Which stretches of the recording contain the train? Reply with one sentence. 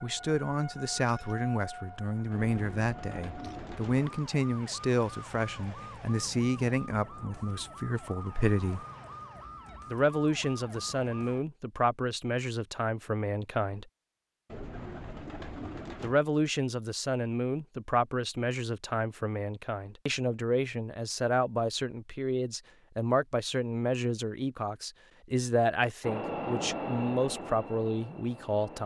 You can hear the train from 26.0 to 28.8 s.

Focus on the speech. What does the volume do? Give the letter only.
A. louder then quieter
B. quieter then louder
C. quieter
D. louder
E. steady
E.